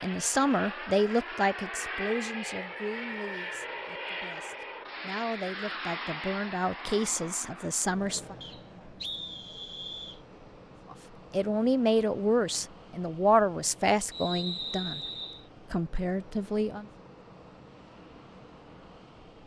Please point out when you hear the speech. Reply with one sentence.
The speech can be heard from 0.0 to 8.3 s, from 10.9 to 15.0 s and from 15.7 to 16.9 s.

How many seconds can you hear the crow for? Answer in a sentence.
You can't hear the crow here.